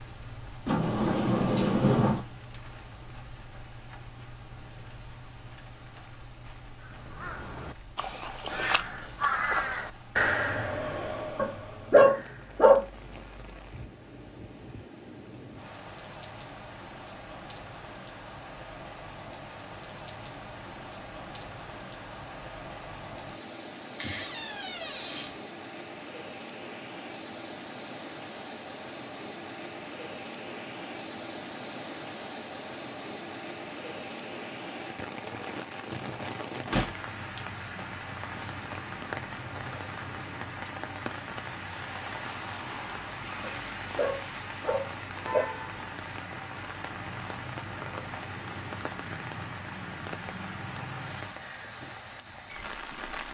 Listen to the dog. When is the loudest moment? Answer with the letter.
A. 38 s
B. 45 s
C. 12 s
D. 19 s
C.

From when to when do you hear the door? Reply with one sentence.
The door can be heard from 0.7 to 2.2 s, from 23.9 to 25.4 s and from 36.7 to 37.4 s.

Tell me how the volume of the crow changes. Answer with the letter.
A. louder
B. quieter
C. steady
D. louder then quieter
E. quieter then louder
D.